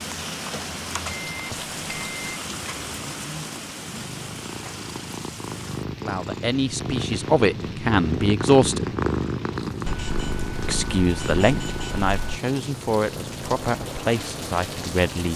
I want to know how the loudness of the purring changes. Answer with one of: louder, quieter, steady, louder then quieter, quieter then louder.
louder then quieter.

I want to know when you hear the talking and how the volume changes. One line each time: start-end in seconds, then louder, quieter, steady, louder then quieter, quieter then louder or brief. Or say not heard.
6.0-8.8 brief
10.7-15.3 quieter.